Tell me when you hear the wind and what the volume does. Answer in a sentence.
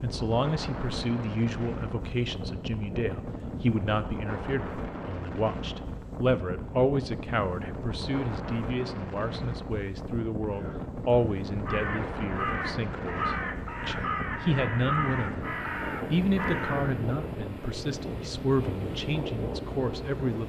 The wind can be heard from 0.0 to 20.4 s, at a steady volume.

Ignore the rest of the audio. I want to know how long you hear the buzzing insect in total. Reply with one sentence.
The buzzing insect can't be heard in this clip.